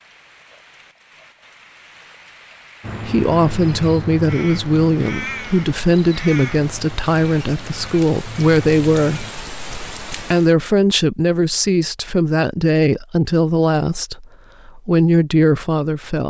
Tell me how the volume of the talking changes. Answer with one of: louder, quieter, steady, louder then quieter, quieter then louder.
steady.